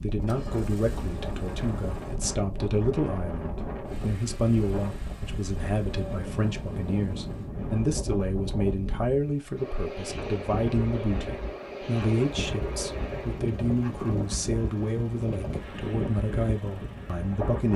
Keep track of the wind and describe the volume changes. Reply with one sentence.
The volume of the wind stays about the same.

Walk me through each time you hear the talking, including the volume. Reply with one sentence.
The talking can be heard from 0.0 to 17.7 s, at a steady volume.